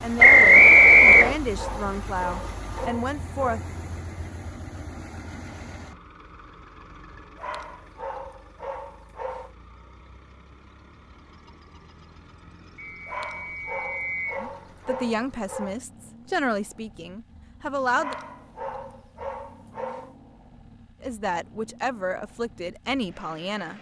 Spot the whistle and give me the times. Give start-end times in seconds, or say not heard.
0.2-1.4, 12.8-14.4.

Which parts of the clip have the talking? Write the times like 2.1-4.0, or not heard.
0.0-3.6, 14.4-18.1, 21.0-23.7.